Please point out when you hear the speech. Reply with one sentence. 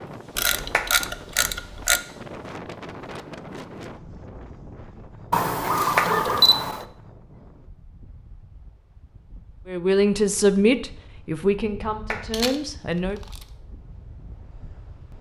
The speech can be heard from 9.7 to 13.2 s.